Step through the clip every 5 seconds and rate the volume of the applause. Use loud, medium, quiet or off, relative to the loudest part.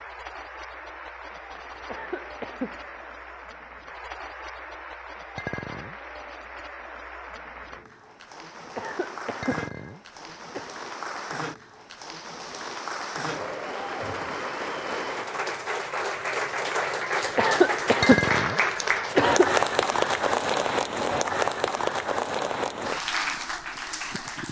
quiet, quiet, medium, loud, loud.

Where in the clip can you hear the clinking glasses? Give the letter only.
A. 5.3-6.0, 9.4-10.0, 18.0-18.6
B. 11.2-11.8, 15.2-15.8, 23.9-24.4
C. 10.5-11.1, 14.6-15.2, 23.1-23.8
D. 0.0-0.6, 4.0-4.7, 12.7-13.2
A.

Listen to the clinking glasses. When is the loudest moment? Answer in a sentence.
The volume of the clinking glasses peaks at 18 seconds.